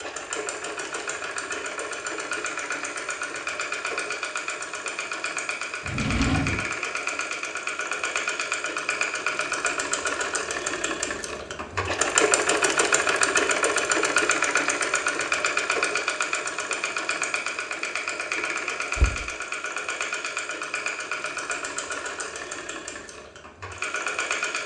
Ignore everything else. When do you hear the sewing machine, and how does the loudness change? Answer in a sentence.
The sewing machine can be heard from 0.0 to 24.6 s, getting louder then quieter.